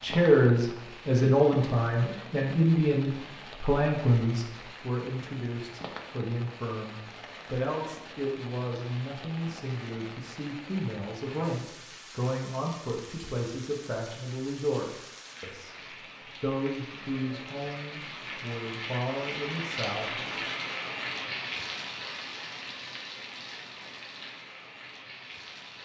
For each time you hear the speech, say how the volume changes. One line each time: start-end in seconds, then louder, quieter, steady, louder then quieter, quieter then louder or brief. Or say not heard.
0.0-20.2 quieter.